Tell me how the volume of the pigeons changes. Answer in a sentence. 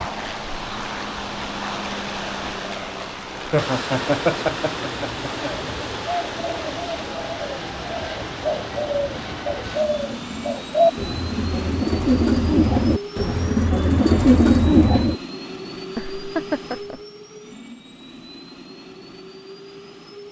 The loudness of the pigeons goes up.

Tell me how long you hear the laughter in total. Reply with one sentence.
You can hear the laughter for 3 seconds altogether.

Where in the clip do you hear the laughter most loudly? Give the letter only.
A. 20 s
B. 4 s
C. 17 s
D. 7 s
B.